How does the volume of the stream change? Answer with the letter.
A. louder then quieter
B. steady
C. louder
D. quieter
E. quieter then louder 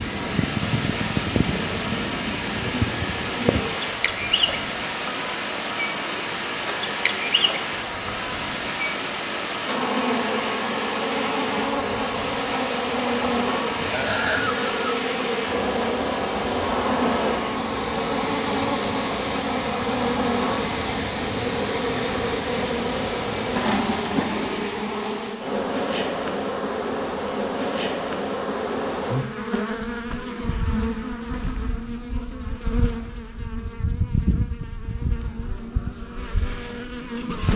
B.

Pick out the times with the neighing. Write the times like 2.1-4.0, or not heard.
13.8-14.9.